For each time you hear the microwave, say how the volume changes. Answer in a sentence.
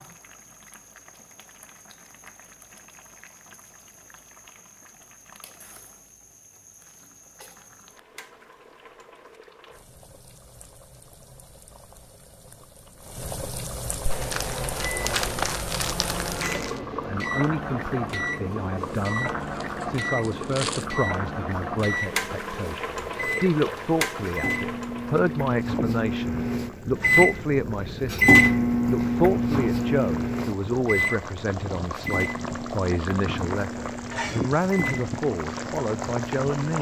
You can hear the microwave from 14.1 to 36.7 s, getting louder then quieter.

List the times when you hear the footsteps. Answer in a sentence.
The footsteps can't be heard in this clip.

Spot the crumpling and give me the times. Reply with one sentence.
You can hear the crumpling from 14.1 to 16.8 s and from 18.8 to 20.9 s.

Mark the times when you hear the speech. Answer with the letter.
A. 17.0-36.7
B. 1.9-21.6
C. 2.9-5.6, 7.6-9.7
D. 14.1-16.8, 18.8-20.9
A.